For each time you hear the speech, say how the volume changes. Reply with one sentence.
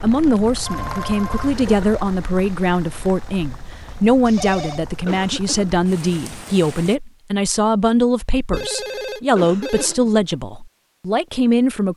The speech can be heard from 0.0 to 11.9 s, at a steady volume.